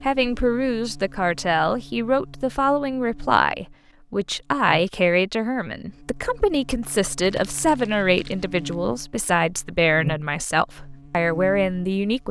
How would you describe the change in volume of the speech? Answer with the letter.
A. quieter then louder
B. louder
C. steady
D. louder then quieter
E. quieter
C.